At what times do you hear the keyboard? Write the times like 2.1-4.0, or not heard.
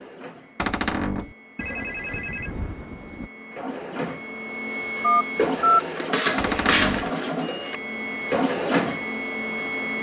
not heard.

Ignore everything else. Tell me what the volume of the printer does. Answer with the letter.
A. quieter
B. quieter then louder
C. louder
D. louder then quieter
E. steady
C.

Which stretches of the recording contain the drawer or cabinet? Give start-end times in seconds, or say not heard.
0.6-1.4, 6.3-7.1.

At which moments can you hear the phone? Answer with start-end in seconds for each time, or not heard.
1.6-3.3, 5.0-5.8.